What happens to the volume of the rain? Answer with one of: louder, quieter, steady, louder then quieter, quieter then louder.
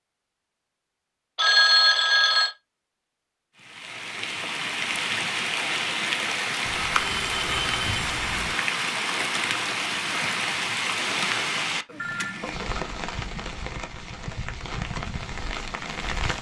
quieter.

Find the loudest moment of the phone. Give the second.
2 s.